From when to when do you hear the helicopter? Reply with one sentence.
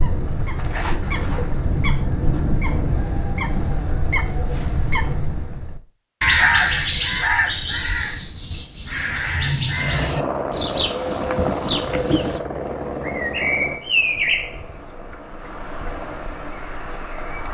You can hear the helicopter from 9.7 to 17.4 s.